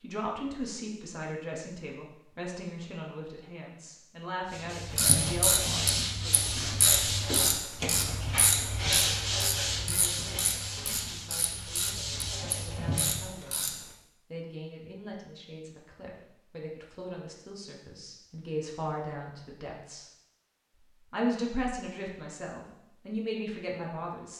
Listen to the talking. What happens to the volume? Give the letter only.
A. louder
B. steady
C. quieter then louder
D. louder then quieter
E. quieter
C.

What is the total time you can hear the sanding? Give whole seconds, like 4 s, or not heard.
9 s.